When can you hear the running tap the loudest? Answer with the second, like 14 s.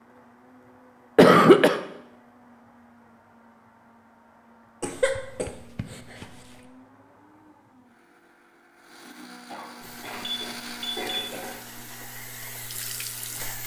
13 s.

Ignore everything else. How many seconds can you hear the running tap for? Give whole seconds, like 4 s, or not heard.
4 s.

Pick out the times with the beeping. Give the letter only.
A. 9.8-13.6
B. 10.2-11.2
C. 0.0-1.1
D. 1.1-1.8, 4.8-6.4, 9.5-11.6
B.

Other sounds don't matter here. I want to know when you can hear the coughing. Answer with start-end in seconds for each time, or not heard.
1.1-1.8, 4.8-6.4, 9.5-11.6.